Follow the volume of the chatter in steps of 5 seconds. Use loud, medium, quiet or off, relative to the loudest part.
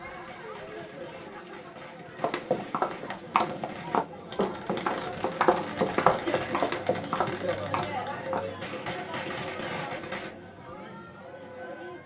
medium, loud, medium.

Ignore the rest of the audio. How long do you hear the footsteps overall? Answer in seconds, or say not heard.
6 s.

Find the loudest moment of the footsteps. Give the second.
6 s.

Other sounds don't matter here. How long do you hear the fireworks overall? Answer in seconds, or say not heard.
10 s.